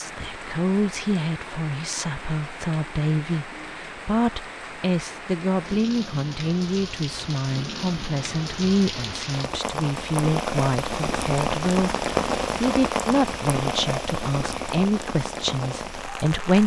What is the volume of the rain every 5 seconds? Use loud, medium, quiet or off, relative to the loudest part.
medium, medium, loud, medium.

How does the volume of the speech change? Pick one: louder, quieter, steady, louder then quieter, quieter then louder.
steady.